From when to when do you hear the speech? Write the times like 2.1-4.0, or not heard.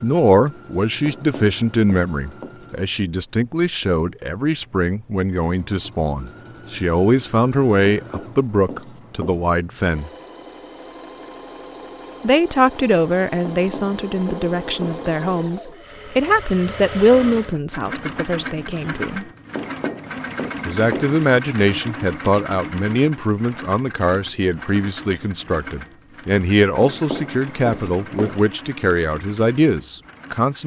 0.0-10.1, 12.2-19.2, 20.6-30.6.